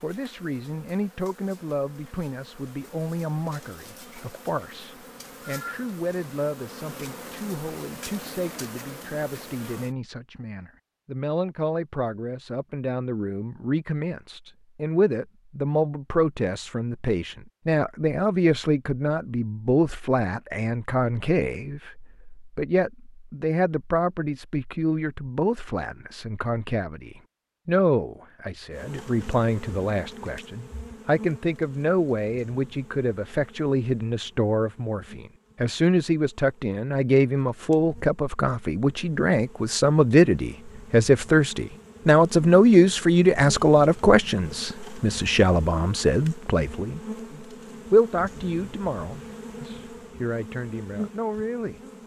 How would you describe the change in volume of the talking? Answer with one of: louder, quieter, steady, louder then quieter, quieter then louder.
louder.